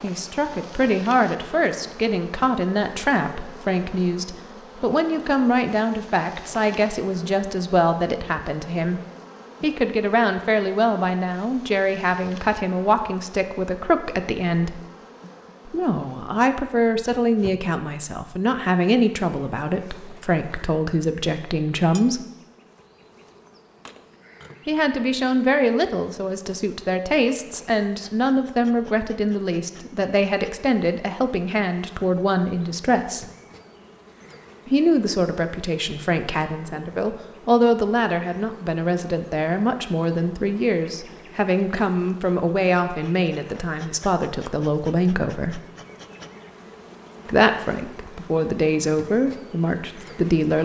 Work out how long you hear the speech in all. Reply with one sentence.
You can hear the speech for 44 seconds altogether.